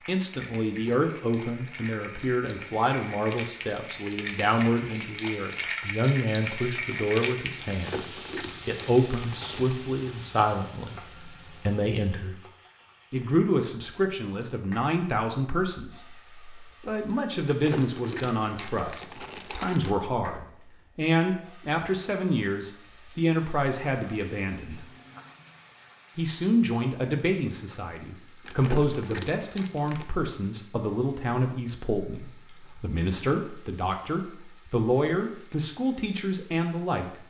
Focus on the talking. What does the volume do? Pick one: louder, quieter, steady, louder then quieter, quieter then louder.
steady.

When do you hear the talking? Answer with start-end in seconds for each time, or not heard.
0.1-8.1, 8.7-12.4, 13.1-24.9, 26.1-37.2.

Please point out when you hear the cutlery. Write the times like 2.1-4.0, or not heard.
not heard.